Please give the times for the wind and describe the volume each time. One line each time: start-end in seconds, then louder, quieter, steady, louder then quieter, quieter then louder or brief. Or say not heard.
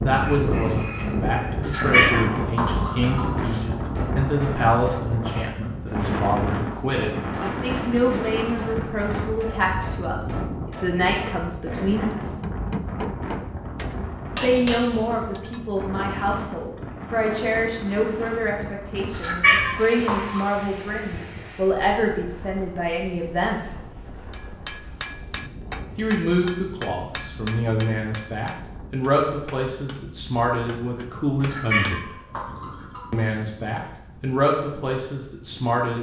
0.0-35.8 quieter.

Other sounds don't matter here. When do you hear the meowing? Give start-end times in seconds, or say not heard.
1.6-3.6, 19.1-20.5, 31.4-33.4.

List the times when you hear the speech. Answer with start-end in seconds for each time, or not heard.
0.0-12.3, 14.3-23.6, 25.9-32.1, 33.1-35.9.